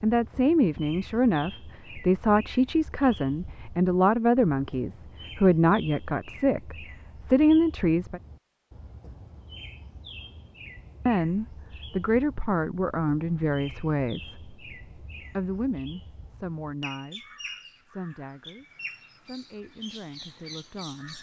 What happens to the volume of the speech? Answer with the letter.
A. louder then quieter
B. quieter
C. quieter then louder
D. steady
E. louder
B.